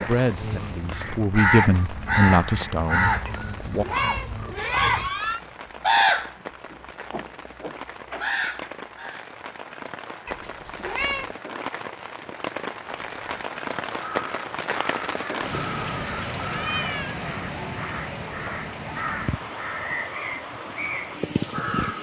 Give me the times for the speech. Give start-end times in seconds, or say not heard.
0.1-3.9.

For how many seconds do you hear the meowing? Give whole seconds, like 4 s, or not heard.
4 s.